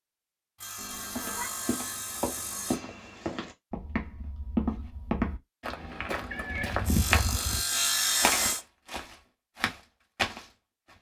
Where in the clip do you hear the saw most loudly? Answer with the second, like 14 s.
8 s.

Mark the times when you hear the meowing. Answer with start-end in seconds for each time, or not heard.
0.8-1.5, 6.3-6.8.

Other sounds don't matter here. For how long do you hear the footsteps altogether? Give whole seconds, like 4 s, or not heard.
10 s.